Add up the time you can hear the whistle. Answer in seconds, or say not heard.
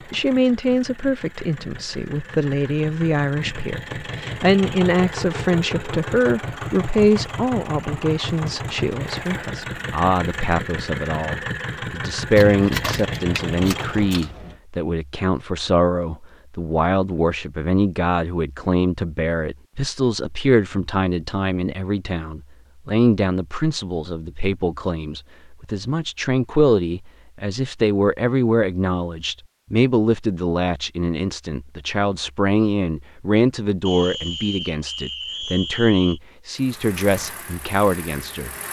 2 s.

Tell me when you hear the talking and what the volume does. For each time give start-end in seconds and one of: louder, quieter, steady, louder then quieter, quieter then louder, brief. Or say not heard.
0.1-38.5 steady.